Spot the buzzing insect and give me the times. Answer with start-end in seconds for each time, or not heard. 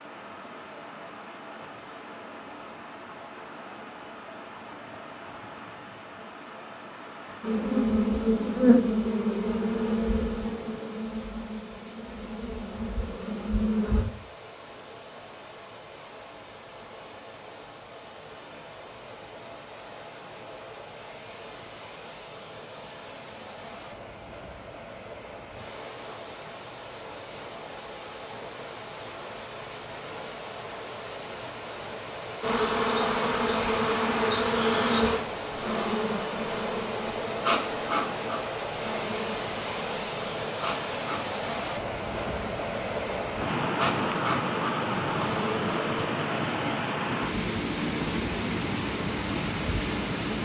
7.4-14.1, 32.4-46.1.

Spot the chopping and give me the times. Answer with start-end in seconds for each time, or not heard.
not heard.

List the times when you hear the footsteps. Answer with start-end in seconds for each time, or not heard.
not heard.